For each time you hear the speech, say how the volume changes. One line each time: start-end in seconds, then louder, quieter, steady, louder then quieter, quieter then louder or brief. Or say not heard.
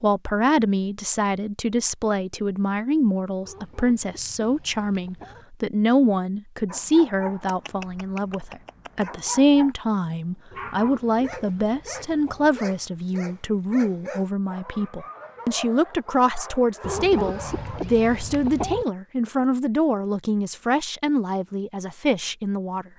0.0-22.9 steady.